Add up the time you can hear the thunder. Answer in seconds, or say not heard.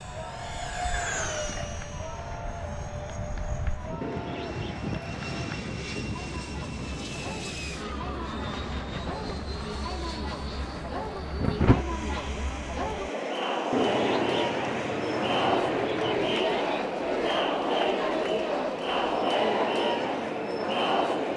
3 s.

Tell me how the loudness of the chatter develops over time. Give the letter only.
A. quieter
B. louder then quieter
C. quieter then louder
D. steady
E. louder
E.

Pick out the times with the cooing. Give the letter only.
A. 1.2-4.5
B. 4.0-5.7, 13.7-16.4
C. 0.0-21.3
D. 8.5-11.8
B.